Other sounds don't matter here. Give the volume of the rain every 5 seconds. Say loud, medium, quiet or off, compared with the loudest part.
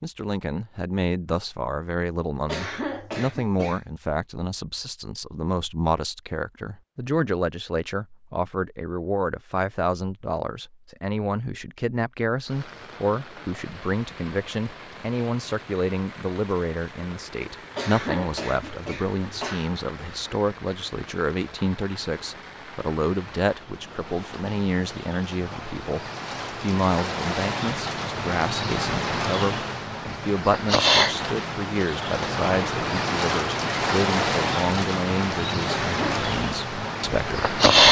off, off, quiet, quiet, quiet, medium, loud, loud.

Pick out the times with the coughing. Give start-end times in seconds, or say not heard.
2.5-3.9, 17.8-19.7, 35.6-36.2.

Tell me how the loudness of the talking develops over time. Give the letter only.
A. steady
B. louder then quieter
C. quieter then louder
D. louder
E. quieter
A.